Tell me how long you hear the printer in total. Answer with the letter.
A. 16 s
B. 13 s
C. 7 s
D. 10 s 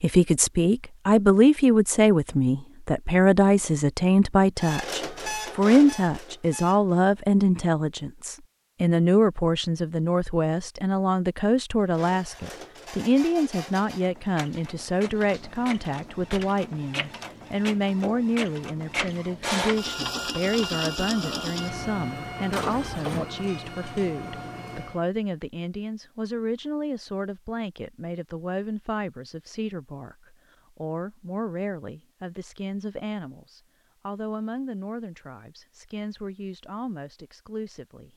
A.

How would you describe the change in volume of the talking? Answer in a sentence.
The volume of the talking goes down.